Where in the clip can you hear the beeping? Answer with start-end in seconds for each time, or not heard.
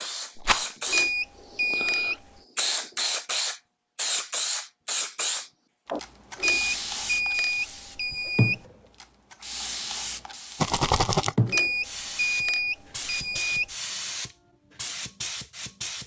0.8-2.1, 6.3-8.6, 11.4-13.7.